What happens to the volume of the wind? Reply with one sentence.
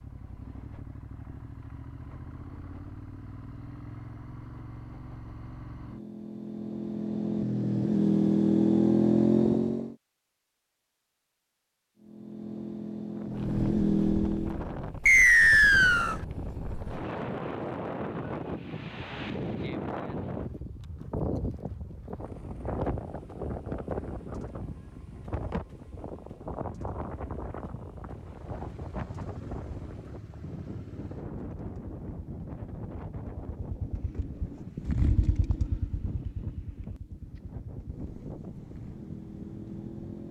The volume of the wind goes down.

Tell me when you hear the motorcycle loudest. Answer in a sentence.
The volume of the motorcycle peaks at 9 seconds.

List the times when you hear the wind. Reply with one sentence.
The wind can be heard from 13.2 to 40.2 s.